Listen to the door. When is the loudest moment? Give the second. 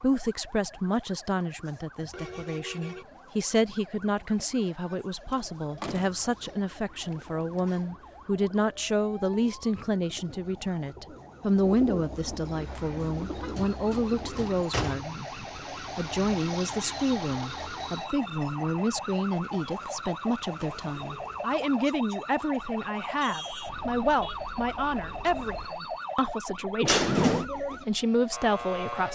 27 s.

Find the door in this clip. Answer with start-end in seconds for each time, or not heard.
5.3-6.2, 13.6-15.1, 26.9-27.4.